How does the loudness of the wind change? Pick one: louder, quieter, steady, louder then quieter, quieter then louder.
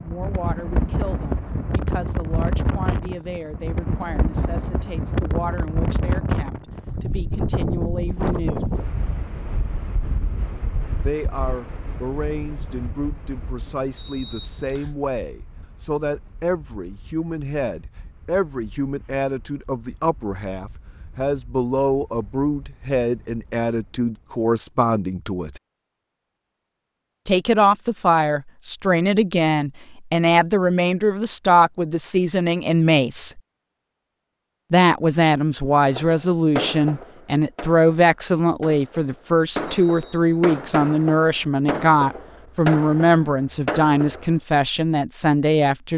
quieter.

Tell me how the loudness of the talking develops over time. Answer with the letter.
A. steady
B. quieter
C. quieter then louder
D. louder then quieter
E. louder
E.